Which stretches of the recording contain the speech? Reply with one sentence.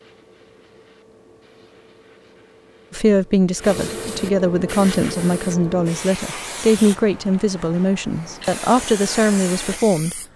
You can hear the speech from 2.9 to 10.2 s.